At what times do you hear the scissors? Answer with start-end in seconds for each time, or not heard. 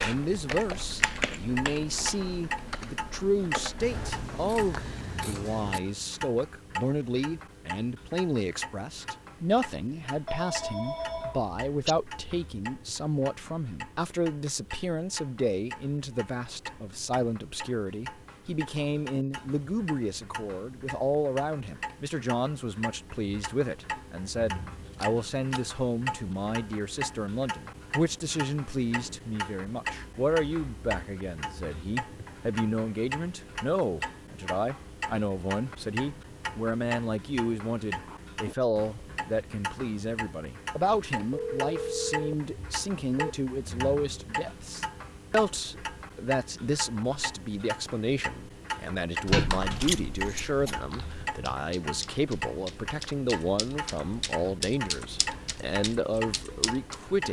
3.8-5.8, 24.7-25.7, 49.3-50.8.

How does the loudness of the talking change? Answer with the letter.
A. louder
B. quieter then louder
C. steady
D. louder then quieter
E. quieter
C.